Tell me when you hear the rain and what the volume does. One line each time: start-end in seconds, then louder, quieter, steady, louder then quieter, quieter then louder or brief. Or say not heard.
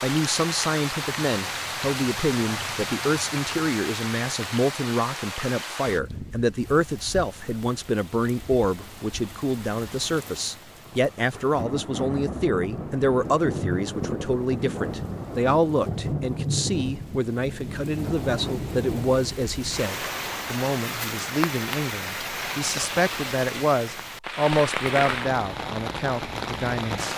0.0-27.1 quieter then louder.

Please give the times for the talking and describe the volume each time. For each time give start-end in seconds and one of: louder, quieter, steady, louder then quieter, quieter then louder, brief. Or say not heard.
0.0-27.1 steady.